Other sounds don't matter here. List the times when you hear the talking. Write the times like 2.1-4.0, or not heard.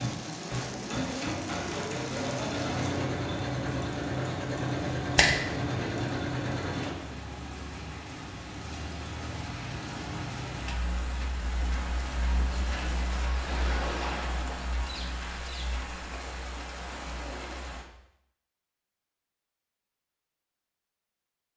not heard.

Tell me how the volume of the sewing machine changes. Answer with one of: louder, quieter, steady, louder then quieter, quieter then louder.
steady.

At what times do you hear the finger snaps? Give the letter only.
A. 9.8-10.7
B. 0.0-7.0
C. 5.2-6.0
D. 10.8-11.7
C.